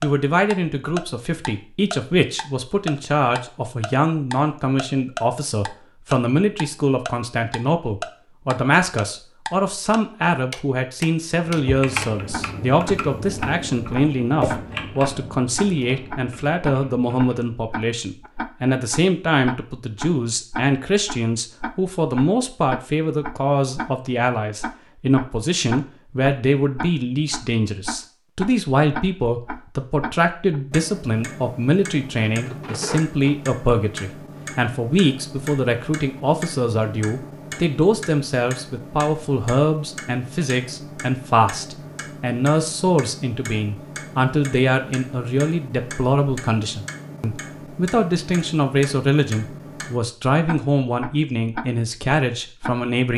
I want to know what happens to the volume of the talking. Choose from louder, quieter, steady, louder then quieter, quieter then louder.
steady.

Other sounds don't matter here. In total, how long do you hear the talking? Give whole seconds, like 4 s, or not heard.
53 s.